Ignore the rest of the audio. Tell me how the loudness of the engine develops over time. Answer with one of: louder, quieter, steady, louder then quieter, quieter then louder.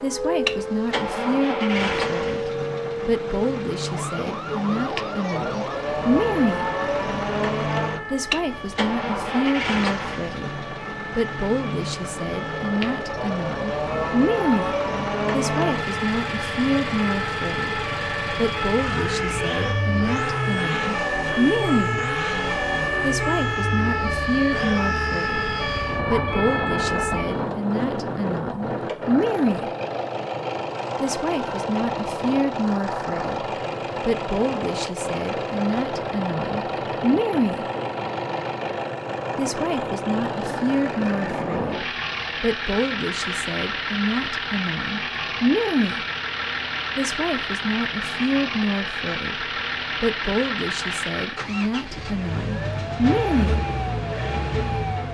steady.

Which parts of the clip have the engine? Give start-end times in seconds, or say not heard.
0.0-55.0.